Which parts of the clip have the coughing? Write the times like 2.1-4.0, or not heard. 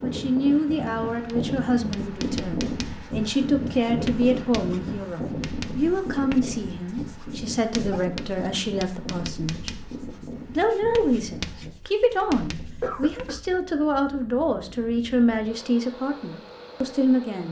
12.8-13.4.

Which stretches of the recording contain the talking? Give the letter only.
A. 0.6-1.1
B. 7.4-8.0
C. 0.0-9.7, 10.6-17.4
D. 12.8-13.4
C.